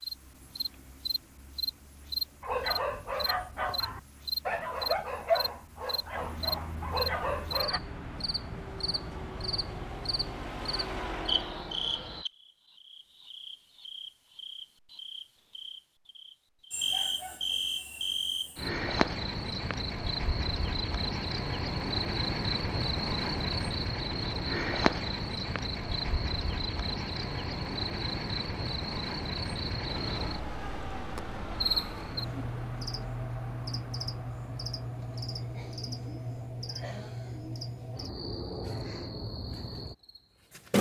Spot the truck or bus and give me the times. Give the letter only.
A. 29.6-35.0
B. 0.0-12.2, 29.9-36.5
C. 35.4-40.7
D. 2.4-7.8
B.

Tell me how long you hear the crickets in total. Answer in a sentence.
You can hear the crickets for 41 seconds altogether.